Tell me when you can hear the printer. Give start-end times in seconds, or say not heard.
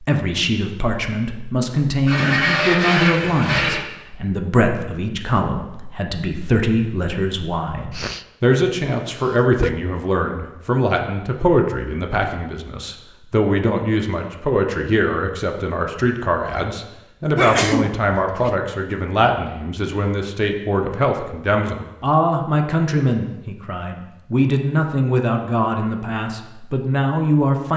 2.0-3.8.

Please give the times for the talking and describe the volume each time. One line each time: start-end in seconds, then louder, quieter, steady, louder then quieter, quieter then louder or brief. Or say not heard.
0.0-27.7 steady.